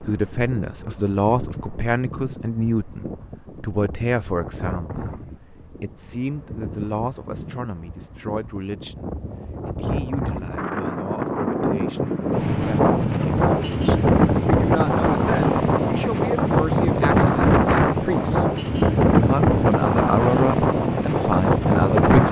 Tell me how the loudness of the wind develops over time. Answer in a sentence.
The volume of the wind goes up.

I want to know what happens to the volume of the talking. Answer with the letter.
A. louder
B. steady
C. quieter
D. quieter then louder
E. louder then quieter
D.